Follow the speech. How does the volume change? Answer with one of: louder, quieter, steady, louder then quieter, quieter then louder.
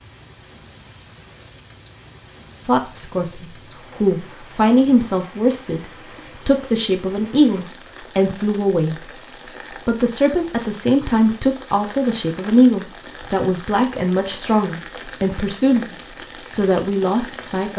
steady.